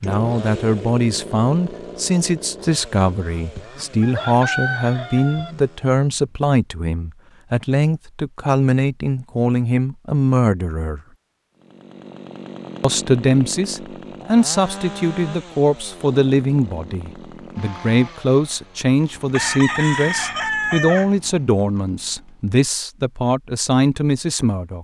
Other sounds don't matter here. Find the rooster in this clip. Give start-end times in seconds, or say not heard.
3.5-5.5, 19.3-21.1.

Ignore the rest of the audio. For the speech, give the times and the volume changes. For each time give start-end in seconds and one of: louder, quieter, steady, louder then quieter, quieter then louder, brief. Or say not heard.
0.0-11.0 steady
12.8-24.7 steady.